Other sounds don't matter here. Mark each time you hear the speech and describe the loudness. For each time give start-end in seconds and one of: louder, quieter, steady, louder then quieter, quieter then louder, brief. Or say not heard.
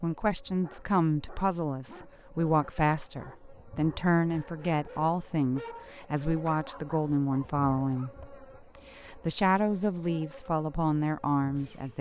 0.0-11.9 steady.